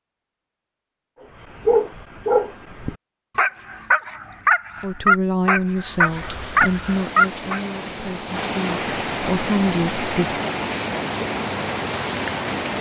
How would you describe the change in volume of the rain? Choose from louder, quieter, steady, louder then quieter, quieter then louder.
louder.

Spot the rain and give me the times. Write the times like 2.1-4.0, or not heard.
5.8-12.7.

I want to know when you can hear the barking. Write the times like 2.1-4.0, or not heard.
1.6-7.6.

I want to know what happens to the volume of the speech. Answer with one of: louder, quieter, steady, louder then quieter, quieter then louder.
quieter then louder.